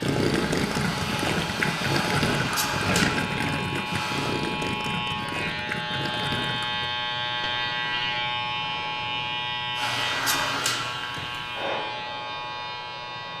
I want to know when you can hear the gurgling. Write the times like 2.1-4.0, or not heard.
0.0-6.9.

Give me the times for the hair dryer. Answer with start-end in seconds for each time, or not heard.
0.0-4.3, 9.8-13.3.